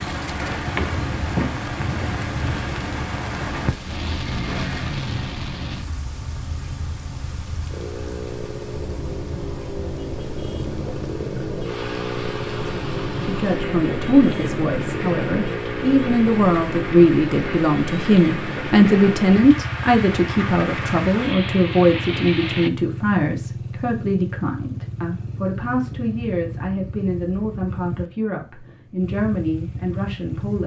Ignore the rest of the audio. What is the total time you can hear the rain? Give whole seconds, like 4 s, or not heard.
23 s.